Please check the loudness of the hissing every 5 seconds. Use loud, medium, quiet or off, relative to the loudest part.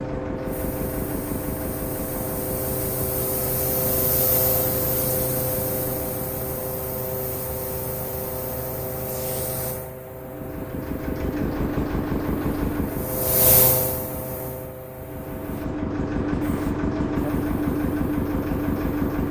loud, loud, loud, medium.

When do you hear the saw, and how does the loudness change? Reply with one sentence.
The saw can't be heard in this clip.